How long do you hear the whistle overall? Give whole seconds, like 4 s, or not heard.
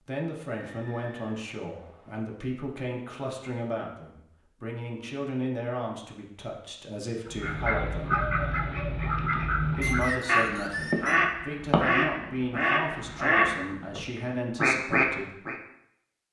3 s.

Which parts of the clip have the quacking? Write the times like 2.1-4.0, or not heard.
7.2-15.6.